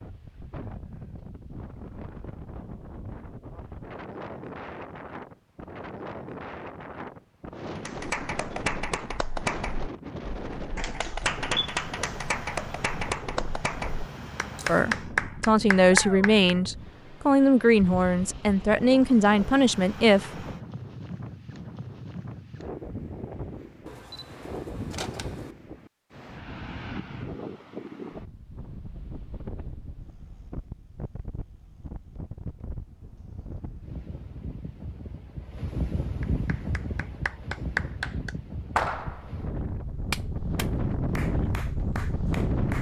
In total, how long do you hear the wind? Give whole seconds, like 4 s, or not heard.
43 s.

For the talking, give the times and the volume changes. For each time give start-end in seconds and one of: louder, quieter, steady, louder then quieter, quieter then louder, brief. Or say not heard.
14.7-20.4 steady.